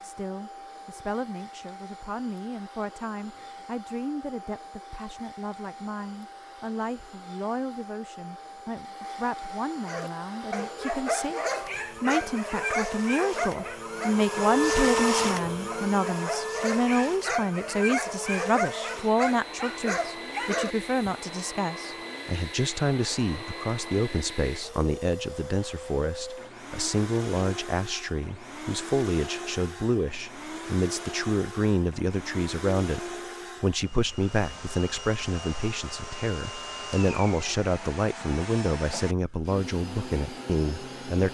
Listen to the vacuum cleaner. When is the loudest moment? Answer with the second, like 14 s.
15 s.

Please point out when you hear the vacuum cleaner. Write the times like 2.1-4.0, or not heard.
0.0-41.2.